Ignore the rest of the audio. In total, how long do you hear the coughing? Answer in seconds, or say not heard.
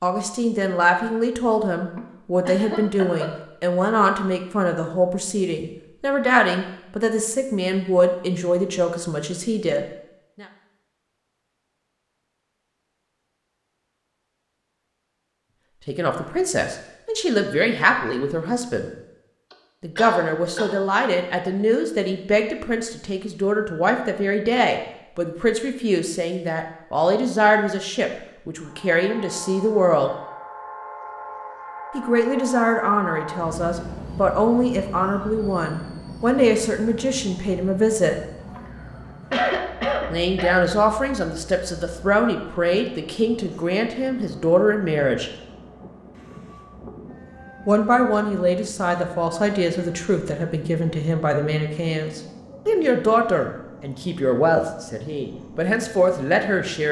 5 s.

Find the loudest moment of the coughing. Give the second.
39 s.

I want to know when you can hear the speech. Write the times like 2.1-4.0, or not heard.
0.0-10.4, 15.8-18.9, 19.8-30.1, 31.9-38.1, 40.1-45.3, 47.6-56.8.